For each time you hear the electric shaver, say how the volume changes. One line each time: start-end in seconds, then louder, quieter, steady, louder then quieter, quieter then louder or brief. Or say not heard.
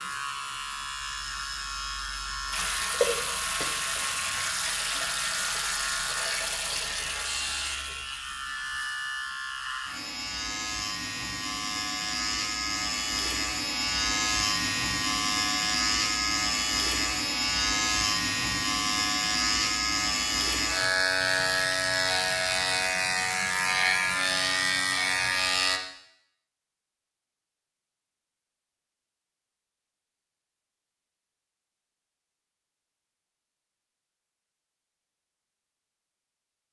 0.0-25.8 louder.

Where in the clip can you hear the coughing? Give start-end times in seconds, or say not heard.
2.9-3.6.